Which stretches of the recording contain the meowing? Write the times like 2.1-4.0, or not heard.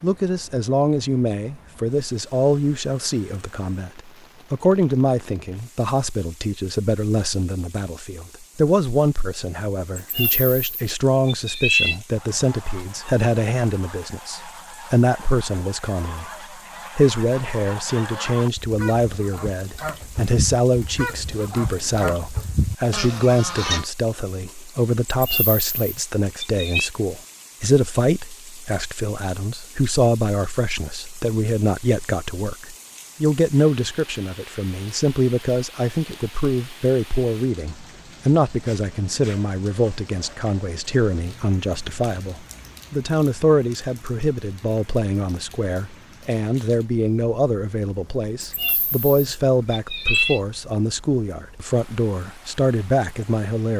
9.9-12.0, 25.1-26.9, 48.4-50.4.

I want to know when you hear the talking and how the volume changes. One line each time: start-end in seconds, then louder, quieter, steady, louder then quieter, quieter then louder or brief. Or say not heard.
0.0-53.7 steady.